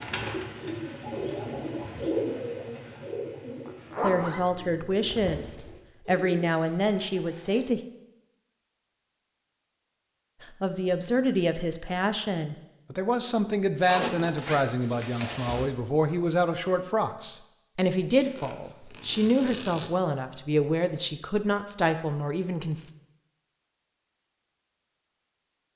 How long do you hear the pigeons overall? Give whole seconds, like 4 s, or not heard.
8 s.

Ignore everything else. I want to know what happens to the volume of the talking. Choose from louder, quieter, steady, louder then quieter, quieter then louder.
steady.